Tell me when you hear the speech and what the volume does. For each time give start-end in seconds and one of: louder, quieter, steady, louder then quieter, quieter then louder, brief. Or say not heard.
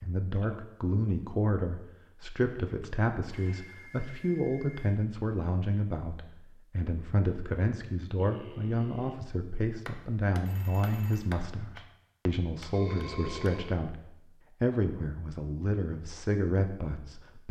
0.0-17.4 steady.